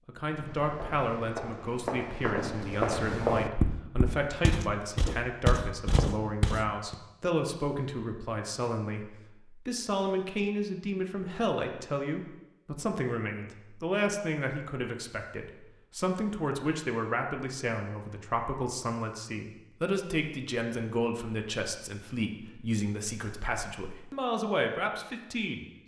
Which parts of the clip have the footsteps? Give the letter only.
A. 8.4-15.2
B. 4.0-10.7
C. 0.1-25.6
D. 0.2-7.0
D.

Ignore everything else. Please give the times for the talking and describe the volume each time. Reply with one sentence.
The talking can be heard from 0.1 to 25.6 s, at a steady volume.